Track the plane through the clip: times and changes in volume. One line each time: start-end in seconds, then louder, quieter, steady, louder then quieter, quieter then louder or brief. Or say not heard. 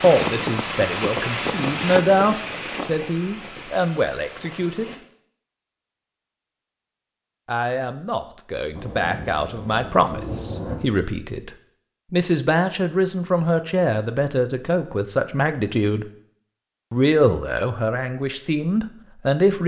0.0-5.0 quieter.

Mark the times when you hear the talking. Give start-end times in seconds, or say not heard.
0.0-5.0, 7.5-11.5, 12.1-16.1, 16.9-19.6.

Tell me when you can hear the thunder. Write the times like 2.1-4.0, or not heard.
8.8-10.8.